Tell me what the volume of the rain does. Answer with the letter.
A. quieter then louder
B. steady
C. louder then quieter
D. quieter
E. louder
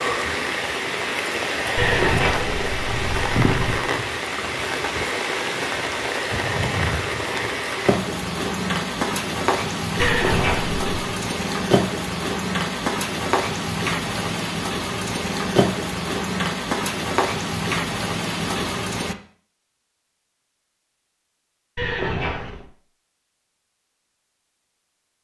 B.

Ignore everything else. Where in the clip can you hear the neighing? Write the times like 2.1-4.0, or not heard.
1.8-3.8, 9.9-11.1, 21.8-22.7.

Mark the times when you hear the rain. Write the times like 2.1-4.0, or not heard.
0.0-19.1.